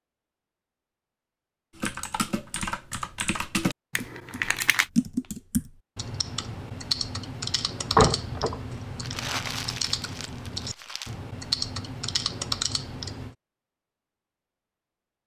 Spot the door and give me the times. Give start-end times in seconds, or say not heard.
7.8-8.6.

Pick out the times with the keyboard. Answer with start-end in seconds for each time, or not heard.
1.8-13.3.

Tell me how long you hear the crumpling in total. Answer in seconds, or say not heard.
3 s.